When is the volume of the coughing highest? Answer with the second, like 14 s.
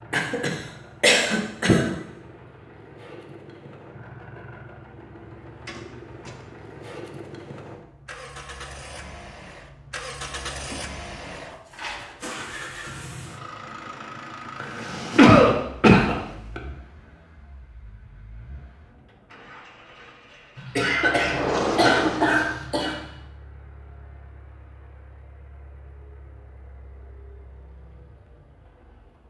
15 s.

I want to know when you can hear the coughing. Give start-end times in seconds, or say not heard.
0.1-1.9, 14.6-16.6, 20.6-23.0.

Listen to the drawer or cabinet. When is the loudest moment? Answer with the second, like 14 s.
22 s.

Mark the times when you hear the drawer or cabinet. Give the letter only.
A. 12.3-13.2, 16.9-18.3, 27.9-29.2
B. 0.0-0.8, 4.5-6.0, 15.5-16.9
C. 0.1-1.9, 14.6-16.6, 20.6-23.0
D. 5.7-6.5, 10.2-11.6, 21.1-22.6
D.